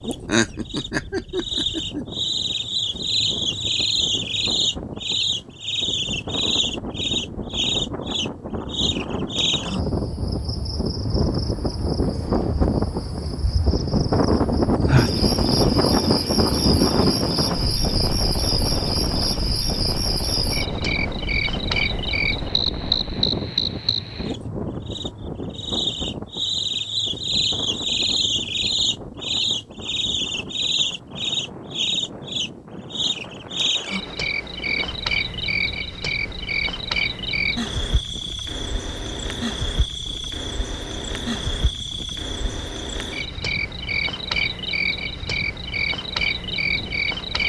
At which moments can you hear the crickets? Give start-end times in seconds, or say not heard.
0.0-47.4.